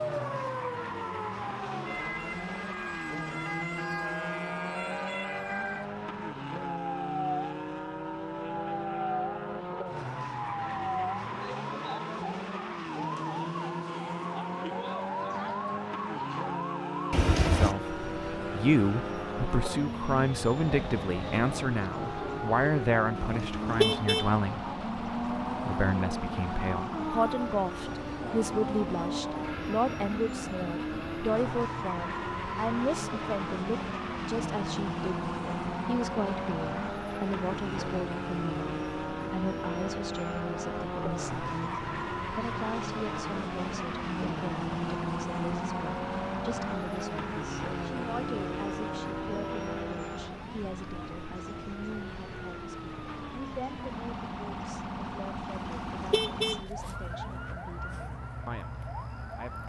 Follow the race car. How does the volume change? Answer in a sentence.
The volume of the race car stays about the same.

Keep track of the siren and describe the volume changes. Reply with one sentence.
The loudness of the siren stays about the same.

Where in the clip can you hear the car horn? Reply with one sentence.
The car horn can be heard from 17.1 to 17.8 s, from 23.1 to 24.2 s and from 55.5 to 56.6 s.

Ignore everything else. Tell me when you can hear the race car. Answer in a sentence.
You can hear the race car from 0.0 to 50.5 s.